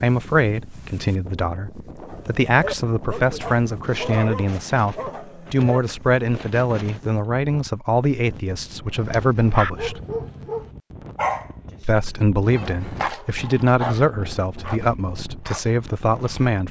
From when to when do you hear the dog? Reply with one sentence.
You can hear the dog from 2.0 to 5.8 s, from 8.9 to 11.9 s and from 12.6 to 16.6 s.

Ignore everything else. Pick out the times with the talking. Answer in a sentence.
You can hear the talking from 0.0 to 10.0 s and from 11.8 to 16.6 s.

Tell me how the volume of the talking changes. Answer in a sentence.
The volume of the talking stays about the same.